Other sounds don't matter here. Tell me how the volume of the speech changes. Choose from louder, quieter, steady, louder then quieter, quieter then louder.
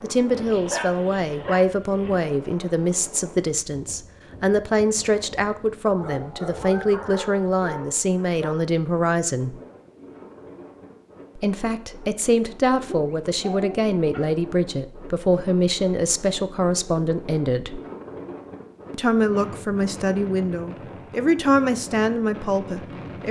steady.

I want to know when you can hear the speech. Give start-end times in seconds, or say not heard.
0.0-9.6, 11.3-17.8, 18.9-23.2.